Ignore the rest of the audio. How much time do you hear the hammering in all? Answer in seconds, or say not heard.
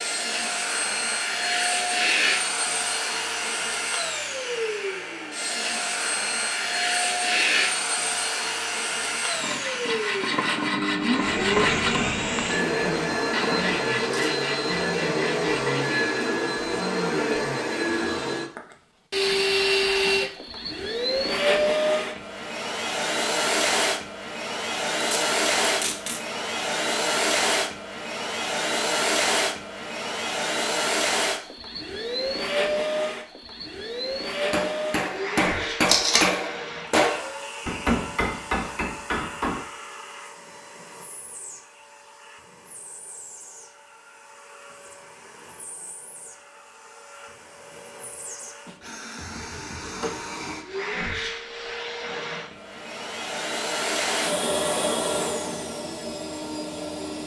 5 s.